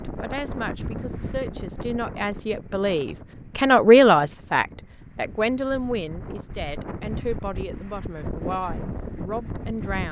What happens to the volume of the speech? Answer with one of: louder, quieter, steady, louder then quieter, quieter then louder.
louder then quieter.